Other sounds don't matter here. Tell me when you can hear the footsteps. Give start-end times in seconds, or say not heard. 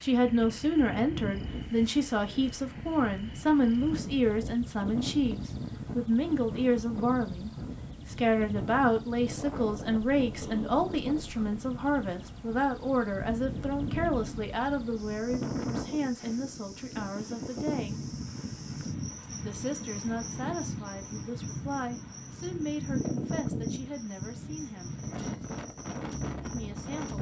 not heard.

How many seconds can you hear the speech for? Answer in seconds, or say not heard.
24 s.